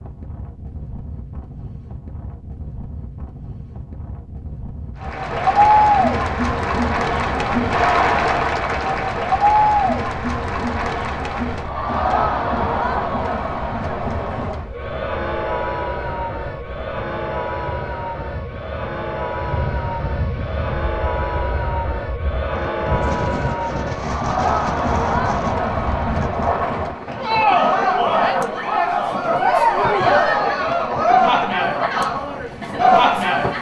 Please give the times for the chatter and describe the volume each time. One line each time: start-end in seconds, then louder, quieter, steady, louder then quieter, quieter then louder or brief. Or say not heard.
5.0-33.5 quieter then louder.